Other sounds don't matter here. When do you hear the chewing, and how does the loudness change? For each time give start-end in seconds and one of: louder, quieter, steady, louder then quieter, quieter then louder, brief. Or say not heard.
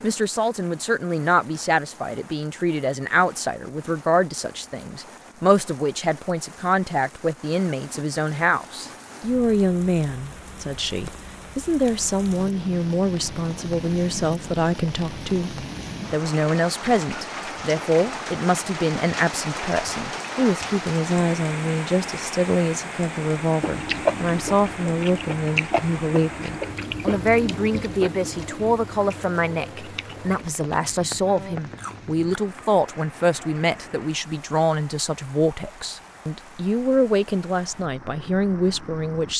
23.6-32.4 quieter.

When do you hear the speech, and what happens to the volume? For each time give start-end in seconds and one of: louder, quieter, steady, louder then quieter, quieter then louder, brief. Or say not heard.
0.0-39.3 steady.